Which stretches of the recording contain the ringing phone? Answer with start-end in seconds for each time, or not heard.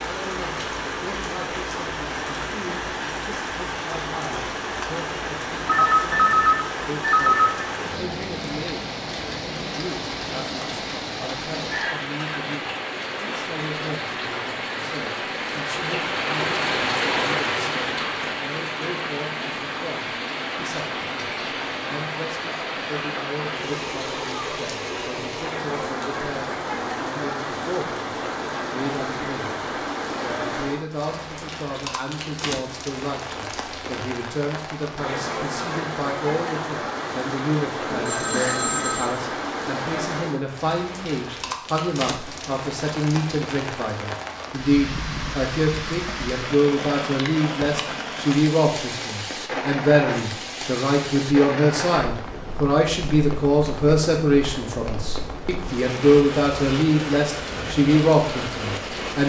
5.7-7.7, 37.9-39.1.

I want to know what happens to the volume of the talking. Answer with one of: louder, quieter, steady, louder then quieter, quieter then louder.
louder.